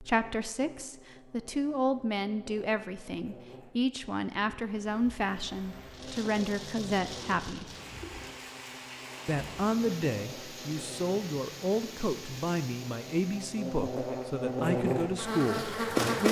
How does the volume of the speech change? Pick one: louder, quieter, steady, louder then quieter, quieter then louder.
steady.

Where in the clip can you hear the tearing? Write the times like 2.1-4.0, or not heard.
not heard.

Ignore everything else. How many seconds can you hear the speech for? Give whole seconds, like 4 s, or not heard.
15 s.